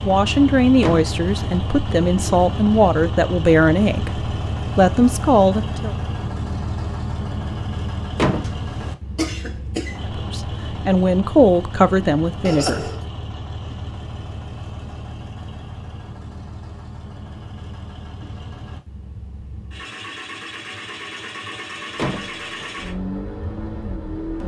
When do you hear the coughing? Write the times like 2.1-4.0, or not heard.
9.2-10.0, 12.4-13.1.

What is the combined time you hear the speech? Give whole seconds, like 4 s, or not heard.
9 s.